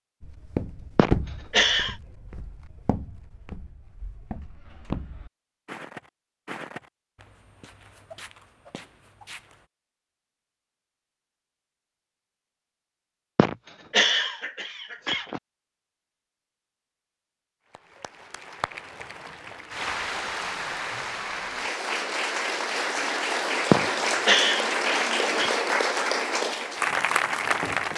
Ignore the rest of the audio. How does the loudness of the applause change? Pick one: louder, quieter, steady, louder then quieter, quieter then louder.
louder.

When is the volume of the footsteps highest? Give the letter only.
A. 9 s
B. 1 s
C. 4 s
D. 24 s
B.